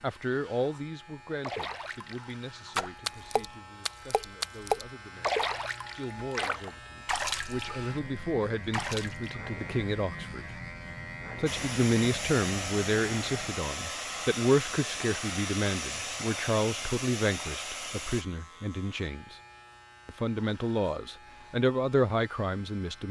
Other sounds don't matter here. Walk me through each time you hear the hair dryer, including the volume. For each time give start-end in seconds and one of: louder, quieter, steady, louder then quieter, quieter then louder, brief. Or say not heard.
11.4-18.2 steady.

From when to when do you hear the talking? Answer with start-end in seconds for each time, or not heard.
0.0-10.6, 11.3-19.4, 20.1-23.0.